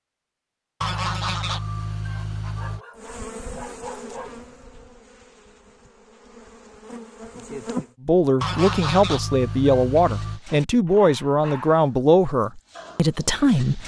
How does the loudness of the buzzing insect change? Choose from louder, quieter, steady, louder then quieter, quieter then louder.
quieter then louder.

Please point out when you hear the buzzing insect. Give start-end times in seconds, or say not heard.
3.0-8.0.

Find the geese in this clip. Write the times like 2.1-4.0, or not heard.
0.8-2.8, 8.4-10.4.